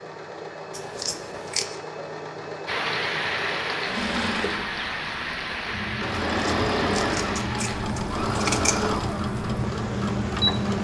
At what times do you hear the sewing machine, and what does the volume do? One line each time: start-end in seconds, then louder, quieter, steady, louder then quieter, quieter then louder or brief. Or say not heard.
0.0-10.7 louder.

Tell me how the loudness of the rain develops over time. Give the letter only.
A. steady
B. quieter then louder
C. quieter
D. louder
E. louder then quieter
C.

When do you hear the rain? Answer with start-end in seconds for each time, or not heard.
2.6-10.7.